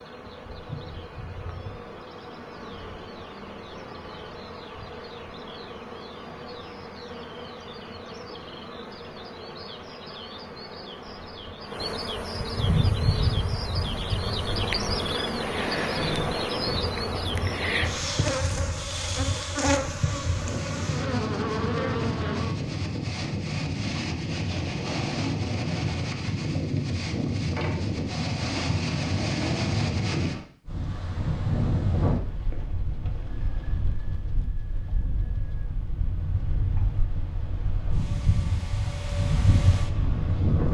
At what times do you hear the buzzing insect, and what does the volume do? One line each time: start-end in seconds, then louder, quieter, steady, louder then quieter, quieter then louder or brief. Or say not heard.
0.0-22.6 louder.